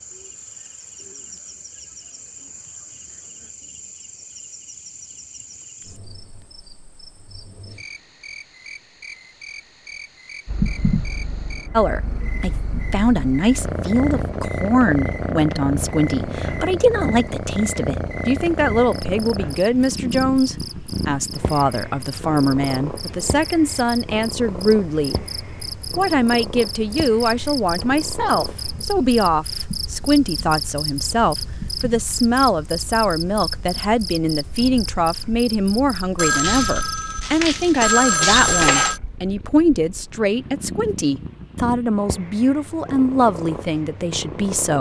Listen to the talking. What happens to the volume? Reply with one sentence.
The volume of the talking stays about the same.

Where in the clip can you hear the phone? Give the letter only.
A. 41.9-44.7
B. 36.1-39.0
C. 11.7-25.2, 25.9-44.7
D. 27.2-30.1
B.